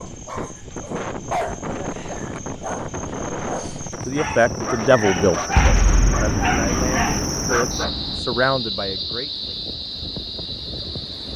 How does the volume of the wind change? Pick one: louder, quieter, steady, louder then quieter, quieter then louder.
quieter.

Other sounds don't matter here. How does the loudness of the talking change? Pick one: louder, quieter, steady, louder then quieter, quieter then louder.
quieter then louder.